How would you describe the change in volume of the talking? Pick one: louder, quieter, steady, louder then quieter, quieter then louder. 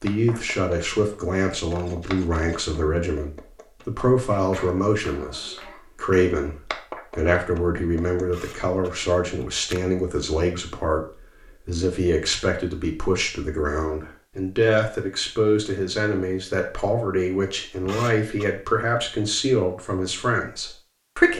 steady.